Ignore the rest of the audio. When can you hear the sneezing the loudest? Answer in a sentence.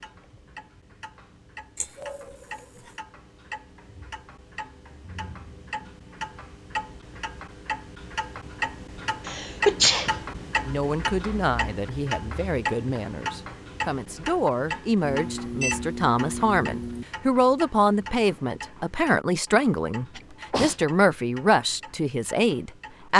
The volume of the sneezing peaks at 10 seconds.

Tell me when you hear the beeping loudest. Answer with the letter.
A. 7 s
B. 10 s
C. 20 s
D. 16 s
D.